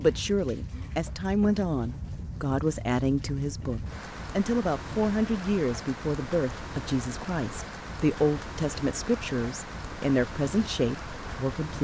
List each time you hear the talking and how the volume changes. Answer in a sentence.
The talking can be heard from 0.0 to 11.7 s, at a steady volume.